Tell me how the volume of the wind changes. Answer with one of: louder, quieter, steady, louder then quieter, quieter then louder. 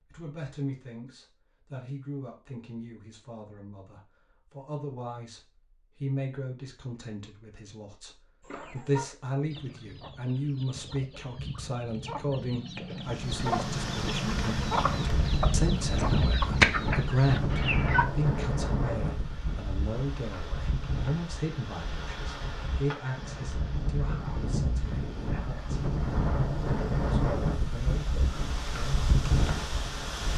quieter then louder.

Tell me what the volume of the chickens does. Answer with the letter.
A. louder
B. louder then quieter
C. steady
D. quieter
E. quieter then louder
A.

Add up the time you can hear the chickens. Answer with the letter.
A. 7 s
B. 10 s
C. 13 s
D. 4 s
B.